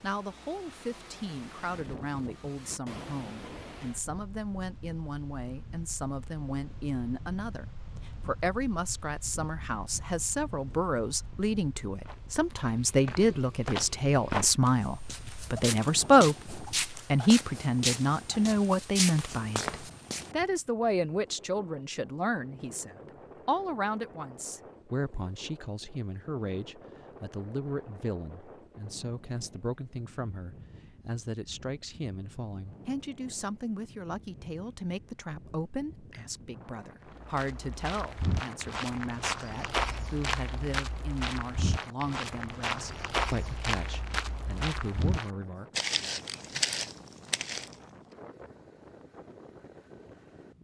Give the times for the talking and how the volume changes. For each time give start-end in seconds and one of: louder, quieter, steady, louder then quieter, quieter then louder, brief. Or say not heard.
0.0-45.8 louder then quieter.